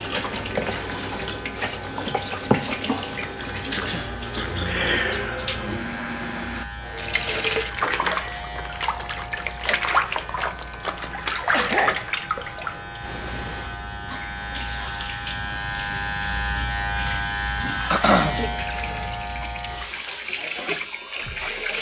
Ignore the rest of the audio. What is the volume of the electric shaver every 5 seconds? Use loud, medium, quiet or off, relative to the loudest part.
medium, medium, medium, loud, medium.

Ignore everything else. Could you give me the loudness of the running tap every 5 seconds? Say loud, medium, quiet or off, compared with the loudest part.
loud, loud, loud, medium, loud.